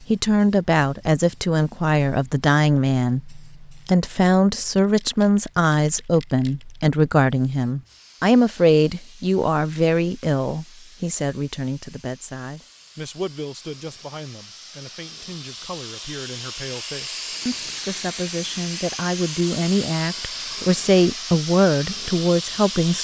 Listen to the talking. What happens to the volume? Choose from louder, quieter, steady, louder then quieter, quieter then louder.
quieter then louder.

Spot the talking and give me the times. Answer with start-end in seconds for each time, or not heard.
0.1-22.9.